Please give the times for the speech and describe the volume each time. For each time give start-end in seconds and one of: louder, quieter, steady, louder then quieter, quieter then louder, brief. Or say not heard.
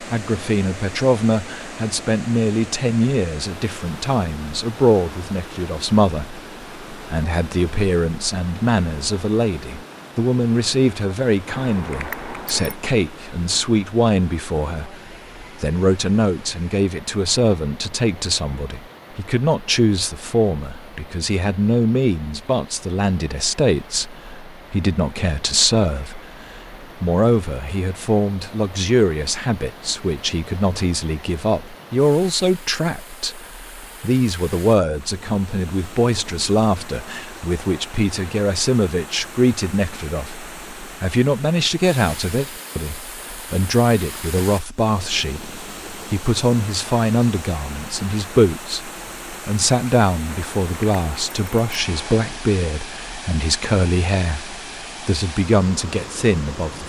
0.0-56.8 steady.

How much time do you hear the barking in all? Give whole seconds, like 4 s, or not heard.
not heard.